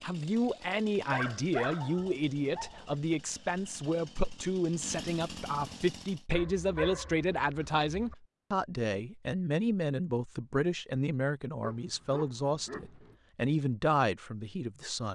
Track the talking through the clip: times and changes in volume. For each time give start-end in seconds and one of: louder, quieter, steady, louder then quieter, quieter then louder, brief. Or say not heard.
0.0-15.1 steady.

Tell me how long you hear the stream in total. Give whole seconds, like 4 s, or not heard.
not heard.